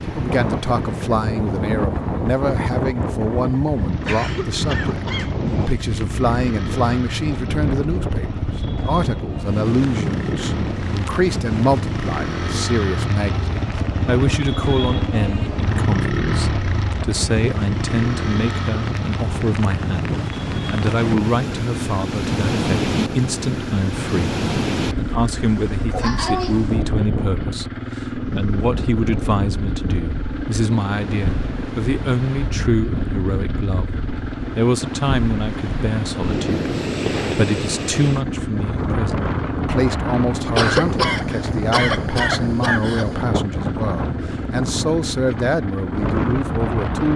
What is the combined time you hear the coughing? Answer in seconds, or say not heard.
5 s.